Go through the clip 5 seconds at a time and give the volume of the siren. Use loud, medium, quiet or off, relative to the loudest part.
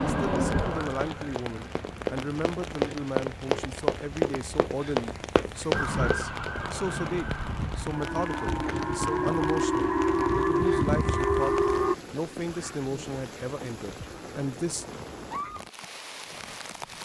medium, medium, loud, off.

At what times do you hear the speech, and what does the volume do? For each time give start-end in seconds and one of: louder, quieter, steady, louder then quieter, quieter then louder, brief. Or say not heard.
0.0-14.8 steady.